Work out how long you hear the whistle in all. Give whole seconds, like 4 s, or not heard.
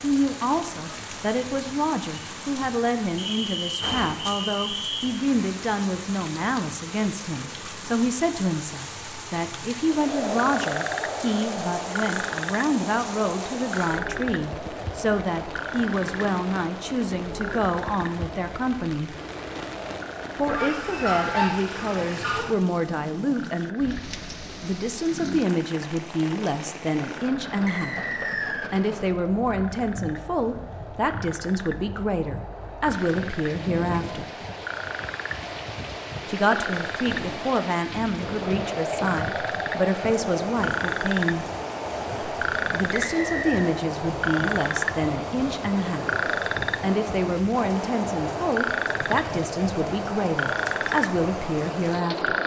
4 s.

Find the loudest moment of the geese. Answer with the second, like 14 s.
21 s.